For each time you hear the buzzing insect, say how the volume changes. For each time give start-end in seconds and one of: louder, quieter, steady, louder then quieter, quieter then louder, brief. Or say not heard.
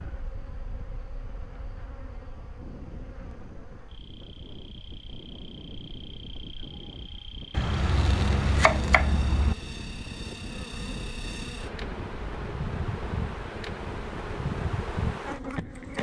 0.0-15.9 louder.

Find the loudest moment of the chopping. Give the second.
9 s.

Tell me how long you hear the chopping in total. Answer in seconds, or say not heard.
2 s.